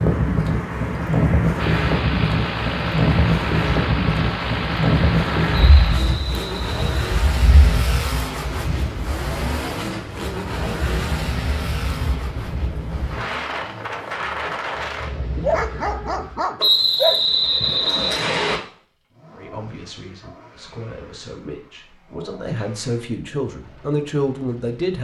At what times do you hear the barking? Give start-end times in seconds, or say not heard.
15.3-17.8.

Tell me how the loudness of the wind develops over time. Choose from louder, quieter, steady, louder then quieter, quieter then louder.
quieter.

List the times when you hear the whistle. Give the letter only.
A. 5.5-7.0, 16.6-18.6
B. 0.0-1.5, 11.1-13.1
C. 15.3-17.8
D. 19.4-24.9
A.